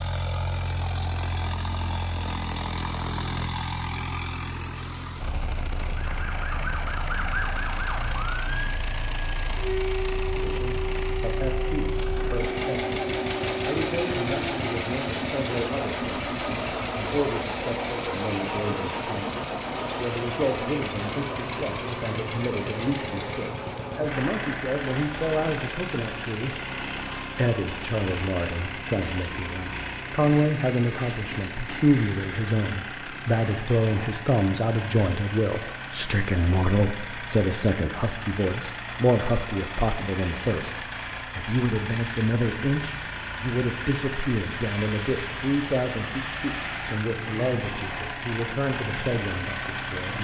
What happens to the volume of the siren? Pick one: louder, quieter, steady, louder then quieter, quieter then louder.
steady.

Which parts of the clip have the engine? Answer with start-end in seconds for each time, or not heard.
0.0-50.1.